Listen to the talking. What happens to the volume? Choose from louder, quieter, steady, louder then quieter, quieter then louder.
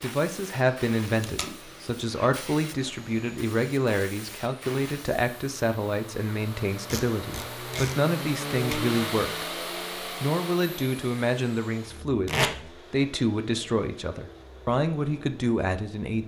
steady.